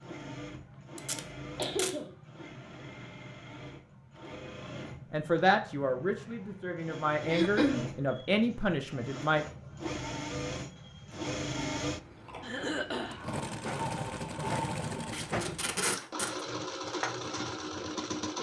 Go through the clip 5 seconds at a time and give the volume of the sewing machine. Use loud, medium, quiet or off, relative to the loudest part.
medium, medium, loud, loud.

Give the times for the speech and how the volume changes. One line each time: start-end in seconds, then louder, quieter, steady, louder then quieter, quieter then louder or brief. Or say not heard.
5.1-9.4 quieter then louder.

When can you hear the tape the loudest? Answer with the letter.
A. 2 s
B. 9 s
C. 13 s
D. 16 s
D.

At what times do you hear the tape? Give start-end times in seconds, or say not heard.
0.9-1.9, 15.1-16.4.